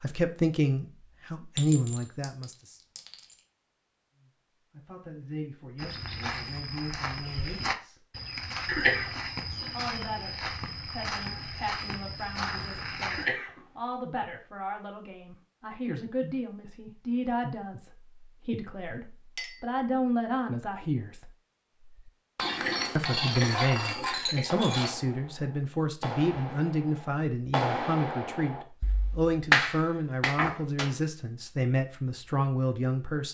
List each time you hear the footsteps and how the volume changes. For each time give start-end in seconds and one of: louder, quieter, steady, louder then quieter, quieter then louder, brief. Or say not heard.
5.8-13.2 steady.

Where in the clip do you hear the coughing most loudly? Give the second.
9 s.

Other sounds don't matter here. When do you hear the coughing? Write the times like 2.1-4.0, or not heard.
8.7-9.2, 13.1-13.6, 22.4-24.5.